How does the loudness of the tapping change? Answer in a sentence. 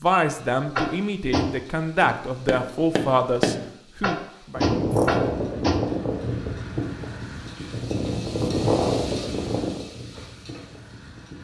The loudness of the tapping goes down, then up.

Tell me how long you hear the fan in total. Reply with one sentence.
The fan can be heard for 7 seconds in total.